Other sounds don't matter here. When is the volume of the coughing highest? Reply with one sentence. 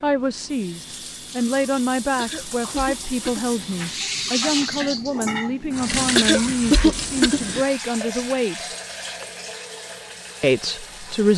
The loudest moment of the coughing is at 7 seconds.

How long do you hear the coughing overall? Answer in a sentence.
You can hear the coughing for 3 seconds altogether.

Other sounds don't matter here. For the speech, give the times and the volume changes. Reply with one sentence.
The speech can be heard from 0.0 to 8.7 s, at a steady volume; and briefly from 10.4 to 11.3 s.